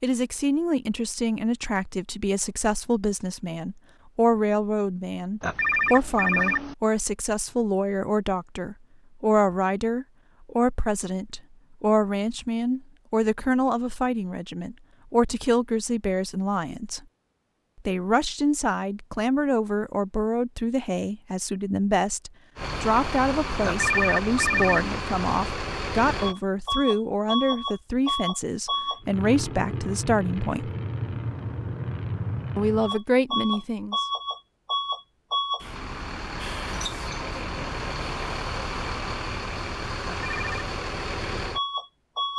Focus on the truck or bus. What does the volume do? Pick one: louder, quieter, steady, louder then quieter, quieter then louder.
steady.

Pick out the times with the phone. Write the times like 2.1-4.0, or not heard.
5.4-6.8, 23.6-24.9, 40.0-40.5.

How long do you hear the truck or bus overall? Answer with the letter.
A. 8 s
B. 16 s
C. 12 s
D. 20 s
D.